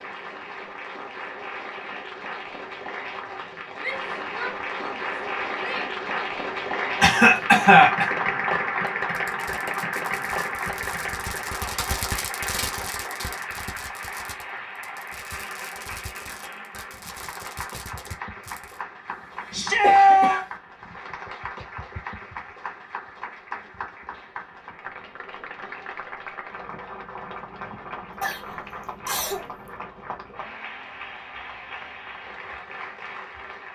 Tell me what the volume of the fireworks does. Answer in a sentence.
The volume of the fireworks goes up, then down.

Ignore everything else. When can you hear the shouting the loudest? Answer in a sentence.
The loudest moment of the shouting is at 20 seconds.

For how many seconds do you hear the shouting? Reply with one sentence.
The shouting can be heard for 3 seconds in total.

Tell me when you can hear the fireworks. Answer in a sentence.
You can hear the fireworks from 9.1 to 18.8 s.